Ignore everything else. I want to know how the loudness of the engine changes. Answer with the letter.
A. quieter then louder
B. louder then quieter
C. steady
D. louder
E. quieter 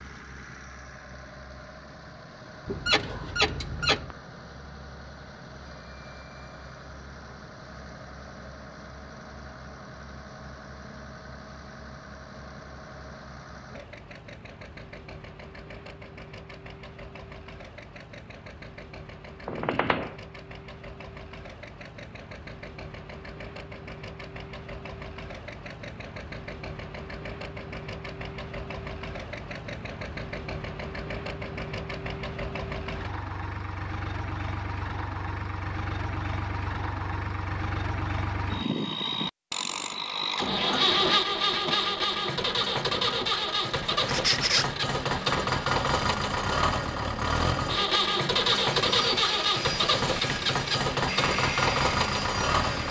D.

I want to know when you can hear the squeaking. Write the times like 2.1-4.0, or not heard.
2.6-4.2, 19.4-20.1, 44.0-44.7.